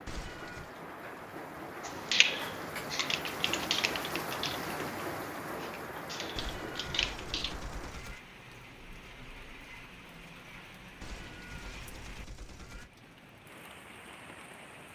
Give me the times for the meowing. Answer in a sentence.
The meowing can be heard from 0.1 to 0.7 s, from 6.3 to 8.2 s and from 11.0 to 12.9 s.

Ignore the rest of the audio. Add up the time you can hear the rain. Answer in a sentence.
You can hear the rain for 15 seconds altogether.